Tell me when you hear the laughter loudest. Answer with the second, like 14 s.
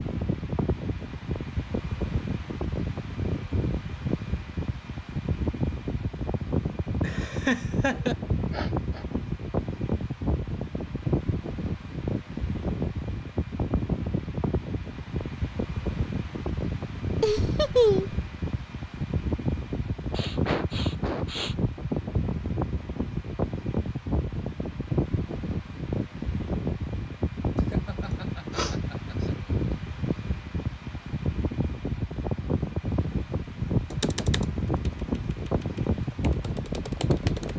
18 s.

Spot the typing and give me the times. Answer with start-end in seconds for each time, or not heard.
33.9-37.5.